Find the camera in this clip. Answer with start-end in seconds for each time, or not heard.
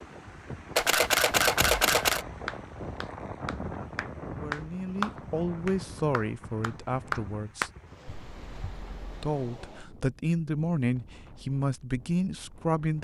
0.8-2.2, 8.1-9.1.